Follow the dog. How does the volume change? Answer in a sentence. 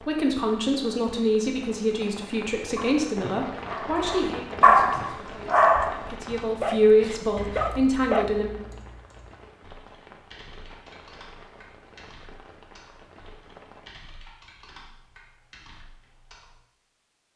The loudness of the dog goes up, then down.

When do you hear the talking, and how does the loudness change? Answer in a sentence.
The talking can be heard from 0.0 to 8.5 s, getting quieter then louder.